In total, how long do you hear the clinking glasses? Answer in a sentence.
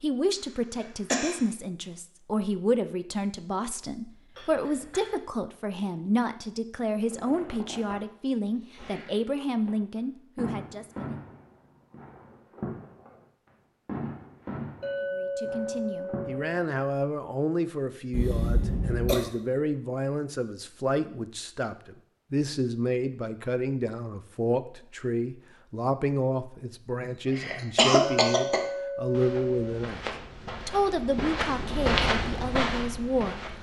The clinking glasses can be heard for 4 seconds in total.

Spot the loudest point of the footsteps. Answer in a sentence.
The volume of the footsteps peaks at 32 seconds.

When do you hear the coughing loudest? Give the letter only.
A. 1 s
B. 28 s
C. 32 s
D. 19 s
B.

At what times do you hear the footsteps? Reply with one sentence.
The footsteps can be heard from 29.1 to 33.5 s.